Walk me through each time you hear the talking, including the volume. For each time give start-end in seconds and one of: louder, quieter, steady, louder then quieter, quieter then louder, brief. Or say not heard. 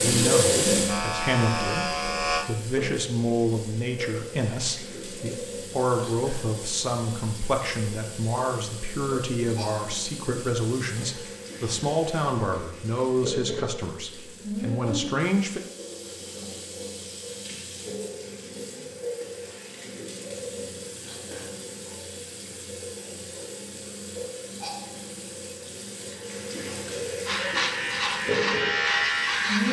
0.0-15.6 steady.